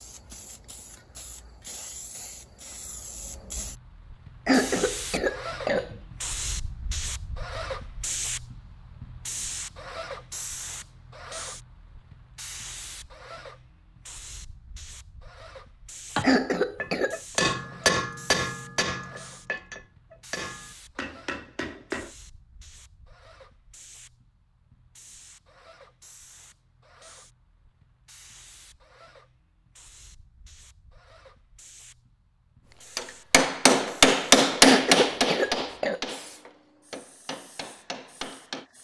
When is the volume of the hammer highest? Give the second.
34 s.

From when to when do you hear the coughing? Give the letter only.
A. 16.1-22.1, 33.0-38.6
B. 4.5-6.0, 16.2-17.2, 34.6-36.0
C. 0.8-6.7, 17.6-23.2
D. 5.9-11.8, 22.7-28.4
B.